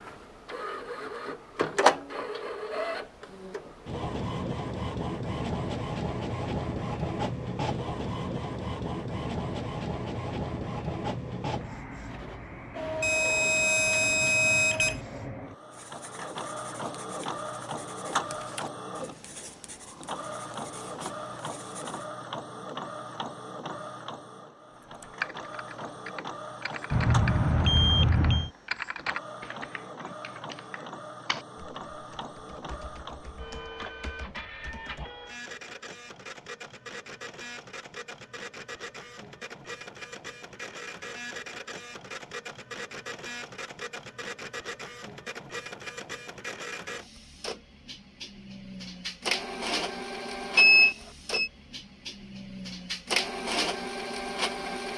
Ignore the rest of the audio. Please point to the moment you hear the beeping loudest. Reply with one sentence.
The loudest moment of the beeping is at 51 seconds.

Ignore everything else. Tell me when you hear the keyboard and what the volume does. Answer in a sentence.
The keyboard can be heard from 24.8 to 35.1 s, getting quieter.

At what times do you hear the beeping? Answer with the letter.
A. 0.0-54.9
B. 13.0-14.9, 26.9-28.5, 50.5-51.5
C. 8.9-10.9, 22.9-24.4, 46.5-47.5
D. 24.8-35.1
B.